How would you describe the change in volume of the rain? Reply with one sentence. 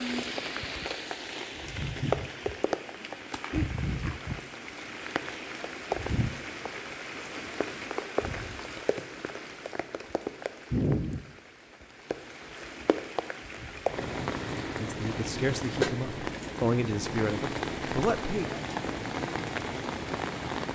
The volume of the rain stays about the same.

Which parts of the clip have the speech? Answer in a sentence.
The speech can be heard from 14.8 to 18.4 s.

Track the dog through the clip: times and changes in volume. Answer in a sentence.
You can't hear the dog here.